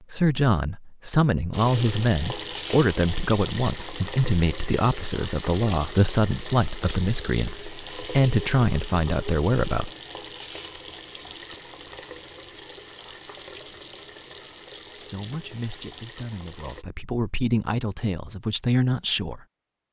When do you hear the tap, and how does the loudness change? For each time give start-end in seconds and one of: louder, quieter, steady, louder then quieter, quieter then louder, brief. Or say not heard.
1.5-16.9 quieter.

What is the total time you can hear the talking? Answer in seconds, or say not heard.
14 s.